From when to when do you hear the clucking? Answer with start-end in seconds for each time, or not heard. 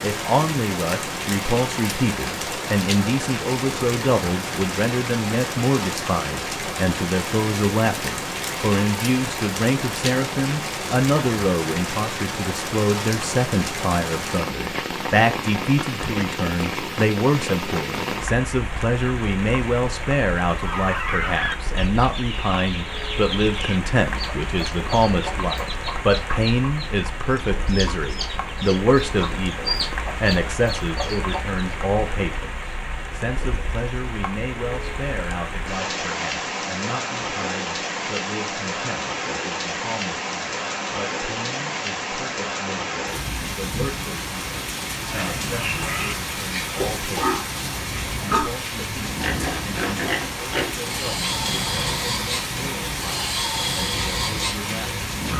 20.5-31.6.